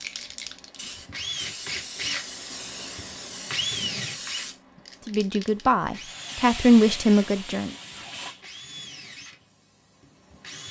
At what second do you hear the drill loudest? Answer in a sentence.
The volume of the drill peaks at 4 seconds.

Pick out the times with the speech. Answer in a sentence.
The speech can be heard from 5.0 to 7.7 s.